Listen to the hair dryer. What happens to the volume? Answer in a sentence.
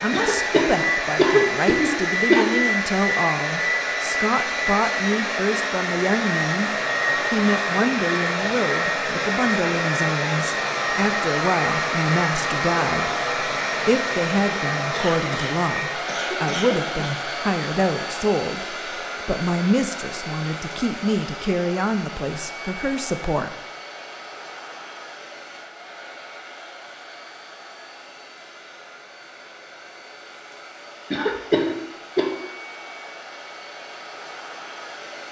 The loudness of the hair dryer goes down.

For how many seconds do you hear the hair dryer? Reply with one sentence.
The hair dryer can be heard for 35 seconds in total.